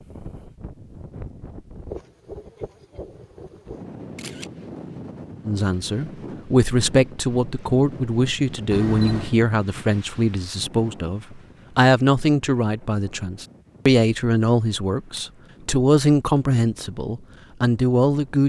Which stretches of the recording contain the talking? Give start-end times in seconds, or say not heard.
5.5-18.4.